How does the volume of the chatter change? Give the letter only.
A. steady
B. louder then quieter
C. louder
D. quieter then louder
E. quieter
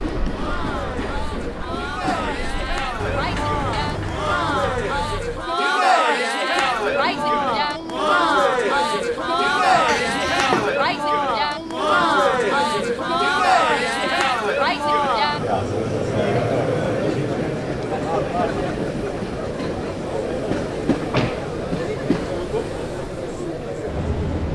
B.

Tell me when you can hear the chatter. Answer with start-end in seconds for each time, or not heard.
0.2-24.5.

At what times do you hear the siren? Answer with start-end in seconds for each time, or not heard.
not heard.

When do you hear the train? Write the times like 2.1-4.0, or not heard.
0.0-4.0, 6.5-24.5.